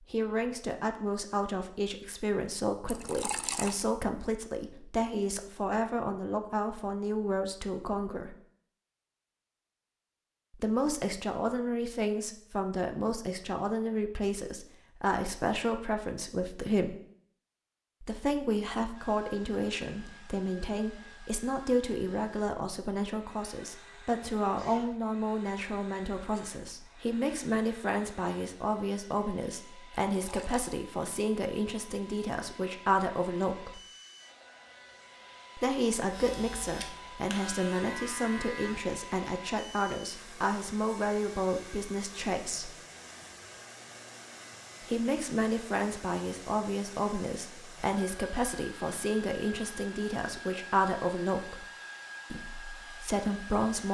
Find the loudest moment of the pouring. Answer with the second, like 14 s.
3 s.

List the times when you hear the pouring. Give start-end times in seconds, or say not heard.
2.9-3.8, 30.1-30.8.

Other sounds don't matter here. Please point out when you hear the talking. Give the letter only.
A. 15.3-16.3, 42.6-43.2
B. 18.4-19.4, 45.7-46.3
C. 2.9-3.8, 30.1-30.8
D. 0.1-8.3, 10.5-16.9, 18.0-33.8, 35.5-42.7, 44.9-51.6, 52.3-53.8
D.